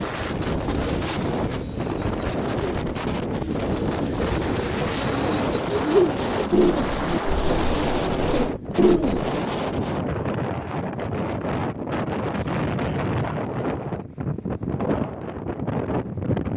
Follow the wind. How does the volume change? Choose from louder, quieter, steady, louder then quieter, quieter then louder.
steady.